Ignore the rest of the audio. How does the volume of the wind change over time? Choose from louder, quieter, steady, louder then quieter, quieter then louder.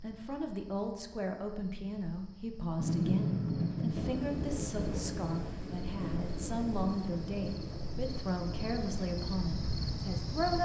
quieter.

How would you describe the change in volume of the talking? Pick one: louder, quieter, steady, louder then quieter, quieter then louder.
steady.